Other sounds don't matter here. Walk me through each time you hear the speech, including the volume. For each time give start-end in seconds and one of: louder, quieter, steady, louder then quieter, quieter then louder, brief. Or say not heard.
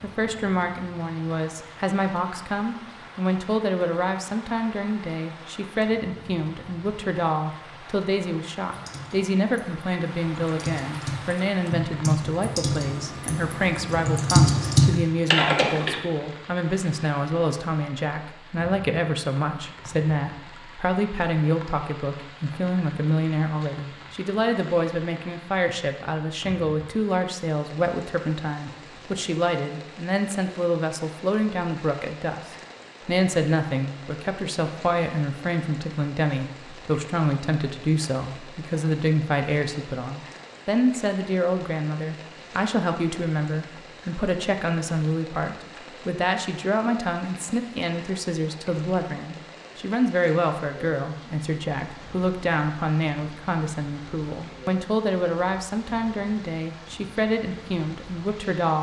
0.0-58.7 steady.